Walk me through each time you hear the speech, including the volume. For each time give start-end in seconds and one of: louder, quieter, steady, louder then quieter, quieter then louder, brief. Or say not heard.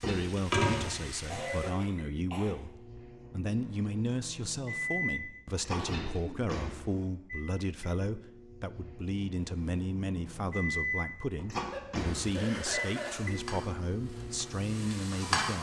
0.0-15.5 steady.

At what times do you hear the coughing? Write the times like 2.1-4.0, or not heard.
1.3-2.5, 5.8-7.1, 11.6-13.3.